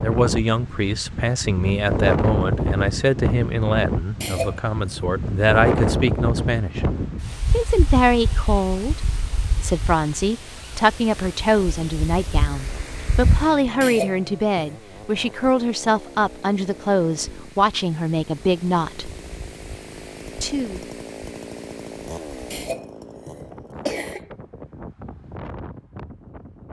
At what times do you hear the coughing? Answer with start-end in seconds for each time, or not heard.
4.2-5.0, 13.8-14.8, 22.5-24.2.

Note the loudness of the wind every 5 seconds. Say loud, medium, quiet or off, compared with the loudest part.
loud, loud, medium, quiet, quiet, quiet.